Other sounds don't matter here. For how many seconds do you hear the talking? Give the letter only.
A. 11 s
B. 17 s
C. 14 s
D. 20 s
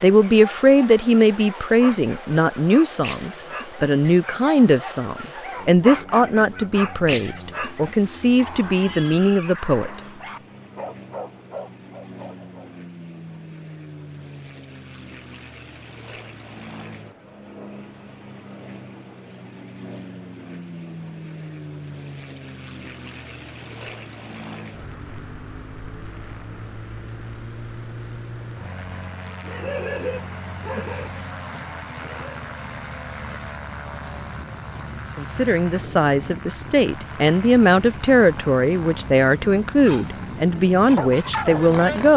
B.